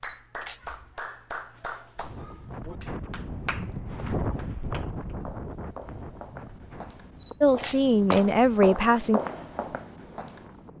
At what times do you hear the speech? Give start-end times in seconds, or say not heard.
7.4-9.2.